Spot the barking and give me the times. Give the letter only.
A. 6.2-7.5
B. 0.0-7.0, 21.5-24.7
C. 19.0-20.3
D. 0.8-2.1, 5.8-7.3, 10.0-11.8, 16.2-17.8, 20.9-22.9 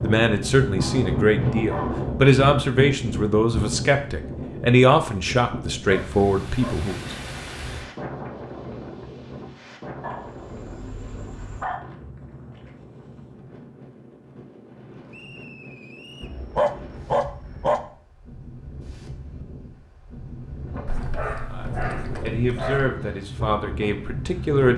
D.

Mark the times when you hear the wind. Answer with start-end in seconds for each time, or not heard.
0.0-24.7.